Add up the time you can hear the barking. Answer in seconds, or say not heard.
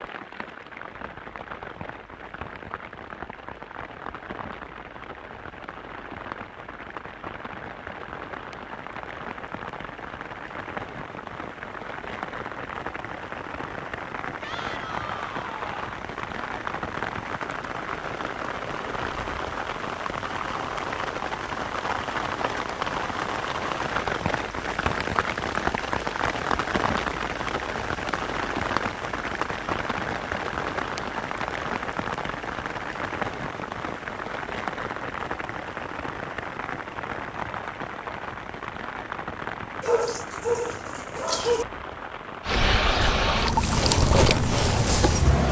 2 s.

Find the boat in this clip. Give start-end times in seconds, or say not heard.
42.5-45.4.